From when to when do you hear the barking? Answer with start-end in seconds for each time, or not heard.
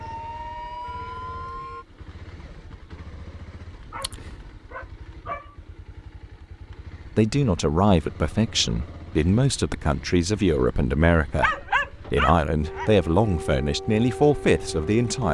3.9-5.5, 11.4-12.9.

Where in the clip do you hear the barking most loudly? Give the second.
12 s.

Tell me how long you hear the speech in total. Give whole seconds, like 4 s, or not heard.
8 s.